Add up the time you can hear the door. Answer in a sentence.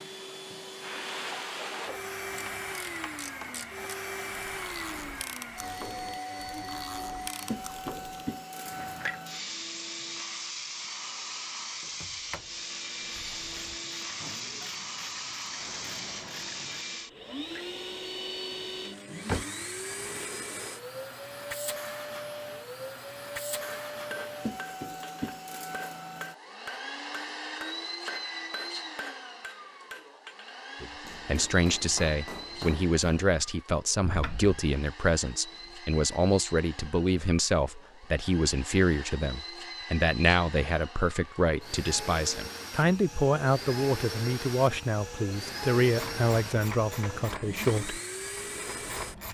You can hear the door for 3 seconds altogether.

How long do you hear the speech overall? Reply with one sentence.
You can hear the speech for 17 seconds altogether.